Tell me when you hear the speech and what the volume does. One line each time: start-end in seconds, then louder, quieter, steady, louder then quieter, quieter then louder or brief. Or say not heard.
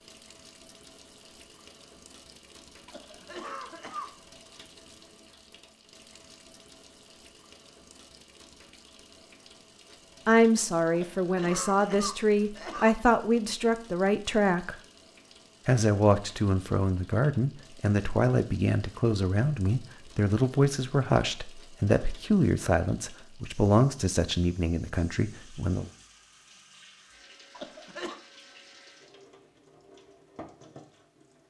10.2-14.8 steady
15.7-25.9 steady.